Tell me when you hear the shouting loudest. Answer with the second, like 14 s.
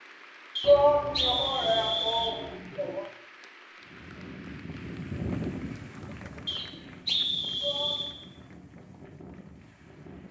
1 s.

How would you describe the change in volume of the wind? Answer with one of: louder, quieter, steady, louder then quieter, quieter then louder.
quieter.